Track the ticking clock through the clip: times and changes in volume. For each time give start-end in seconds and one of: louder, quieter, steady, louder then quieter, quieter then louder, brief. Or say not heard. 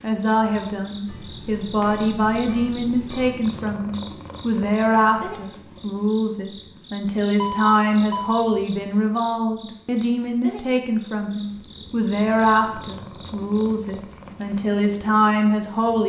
not heard.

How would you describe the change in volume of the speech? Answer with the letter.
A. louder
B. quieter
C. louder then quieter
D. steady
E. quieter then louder
D.